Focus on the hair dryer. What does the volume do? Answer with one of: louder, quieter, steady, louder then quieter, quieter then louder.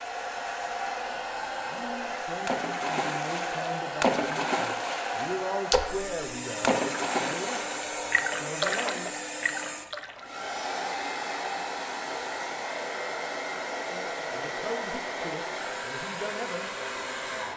steady.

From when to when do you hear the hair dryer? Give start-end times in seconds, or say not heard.
0.0-17.5.